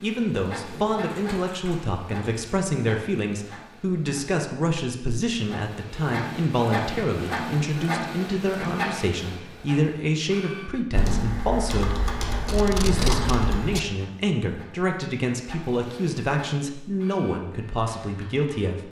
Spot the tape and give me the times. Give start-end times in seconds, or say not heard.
12.4-13.9.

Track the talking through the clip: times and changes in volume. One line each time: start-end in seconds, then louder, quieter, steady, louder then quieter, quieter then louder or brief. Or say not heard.
0.0-18.8 steady.